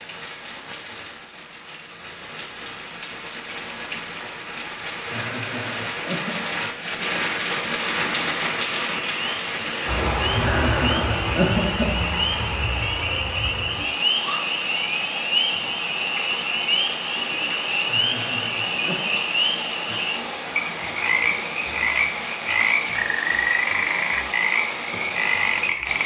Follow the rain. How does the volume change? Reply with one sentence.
The loudness of the rain goes up, then down.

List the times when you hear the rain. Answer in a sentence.
You can hear the rain from 0.0 to 26.0 s.